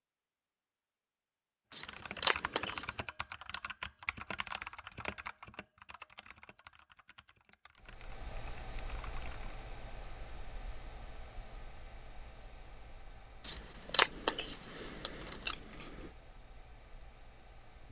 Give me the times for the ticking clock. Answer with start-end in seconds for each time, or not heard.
not heard.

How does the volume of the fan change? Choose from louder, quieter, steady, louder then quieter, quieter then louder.
quieter.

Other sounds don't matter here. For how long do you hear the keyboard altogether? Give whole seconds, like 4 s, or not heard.
8 s.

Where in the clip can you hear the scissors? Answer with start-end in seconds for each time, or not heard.
1.7-2.9, 13.4-15.8.